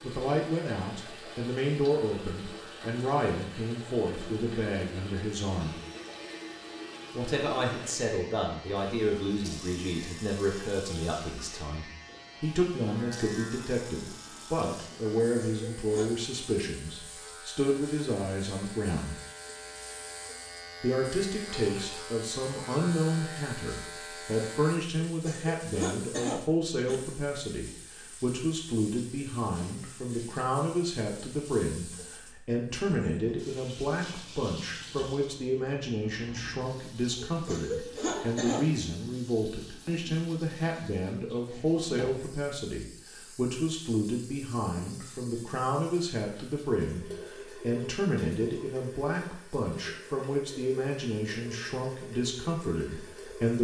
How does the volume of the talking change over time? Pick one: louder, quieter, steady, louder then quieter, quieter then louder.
steady.